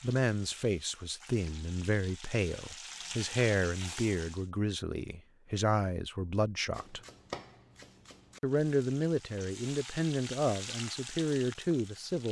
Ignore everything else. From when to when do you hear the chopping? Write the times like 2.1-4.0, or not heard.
6.7-8.4.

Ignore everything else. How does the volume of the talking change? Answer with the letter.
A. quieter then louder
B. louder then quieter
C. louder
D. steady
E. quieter
D.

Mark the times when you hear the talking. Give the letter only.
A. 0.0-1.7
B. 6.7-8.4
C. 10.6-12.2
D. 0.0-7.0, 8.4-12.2
D.